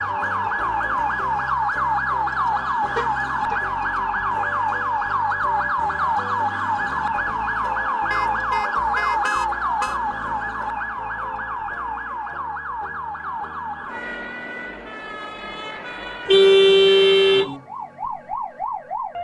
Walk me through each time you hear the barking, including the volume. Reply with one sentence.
The barking can't be heard in this clip.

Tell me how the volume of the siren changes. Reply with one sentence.
The volume of the siren goes down.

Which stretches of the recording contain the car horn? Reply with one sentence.
The car horn can be heard from 3.0 to 3.6 s, from 8.1 to 10.0 s and from 16.2 to 17.5 s.